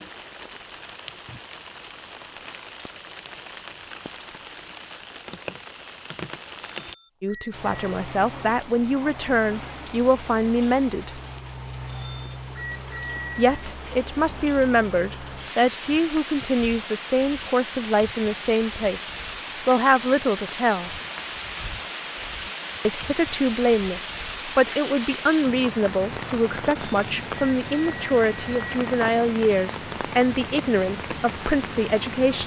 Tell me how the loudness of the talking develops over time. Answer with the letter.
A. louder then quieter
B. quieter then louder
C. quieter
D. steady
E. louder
D.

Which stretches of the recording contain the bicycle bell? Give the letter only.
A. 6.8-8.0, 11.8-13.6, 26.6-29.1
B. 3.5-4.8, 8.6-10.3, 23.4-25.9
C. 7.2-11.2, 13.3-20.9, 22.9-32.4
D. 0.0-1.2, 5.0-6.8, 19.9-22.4
A.